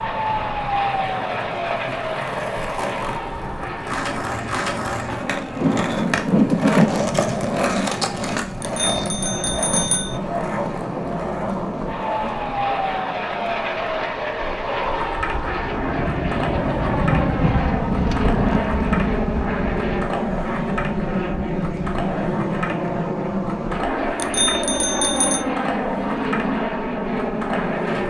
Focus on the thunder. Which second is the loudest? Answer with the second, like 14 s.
7 s.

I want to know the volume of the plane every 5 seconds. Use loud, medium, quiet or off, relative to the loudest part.
loud, medium, loud, loud, loud, loud.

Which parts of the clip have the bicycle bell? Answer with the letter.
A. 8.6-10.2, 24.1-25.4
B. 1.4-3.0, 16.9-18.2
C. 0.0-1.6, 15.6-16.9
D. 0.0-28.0
A.